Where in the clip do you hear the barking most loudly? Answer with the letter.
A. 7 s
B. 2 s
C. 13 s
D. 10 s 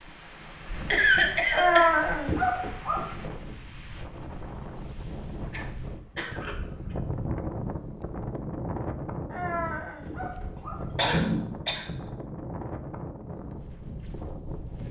B.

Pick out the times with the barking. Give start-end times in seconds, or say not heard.
1.5-3.4, 9.3-11.1.